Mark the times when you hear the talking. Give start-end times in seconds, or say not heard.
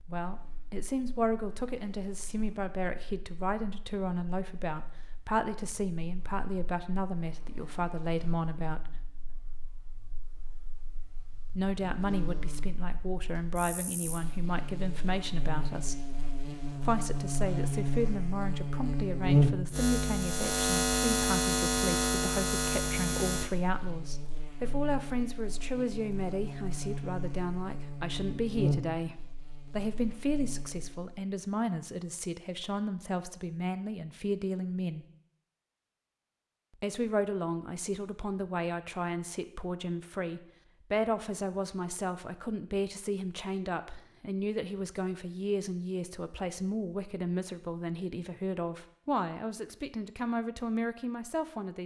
0.1-9.1, 11.5-16.0, 16.8-35.0, 36.8-51.8.